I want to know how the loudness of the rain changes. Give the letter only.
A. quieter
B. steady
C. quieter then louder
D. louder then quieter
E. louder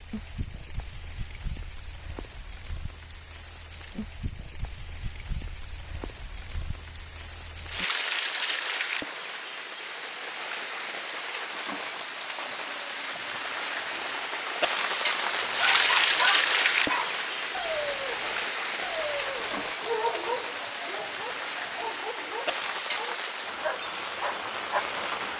D.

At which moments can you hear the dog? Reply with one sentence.
You can hear the dog from 15.4 to 24.9 s.